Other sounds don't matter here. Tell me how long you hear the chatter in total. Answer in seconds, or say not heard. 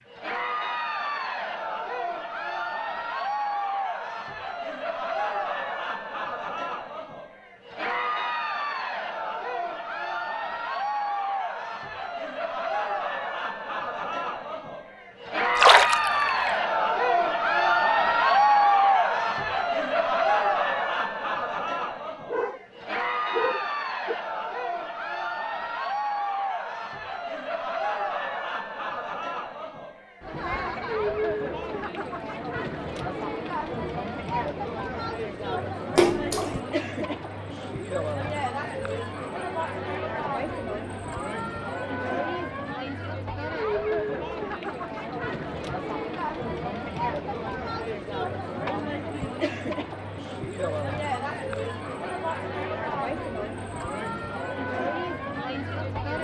56 s.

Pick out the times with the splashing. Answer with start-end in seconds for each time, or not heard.
15.6-16.5, 36.0-36.5.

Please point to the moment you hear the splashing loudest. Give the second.
16 s.